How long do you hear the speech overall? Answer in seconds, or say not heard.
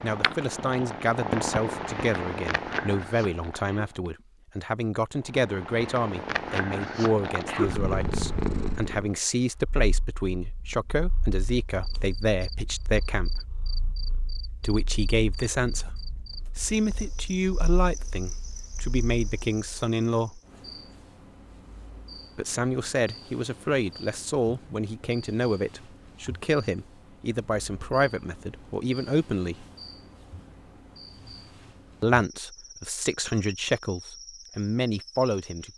30 s.